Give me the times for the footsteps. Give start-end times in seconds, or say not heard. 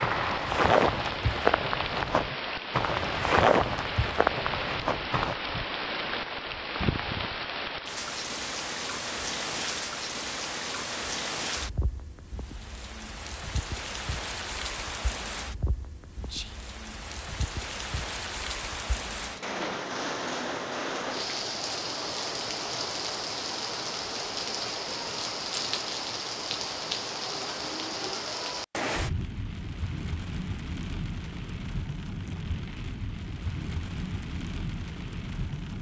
0.0-5.3.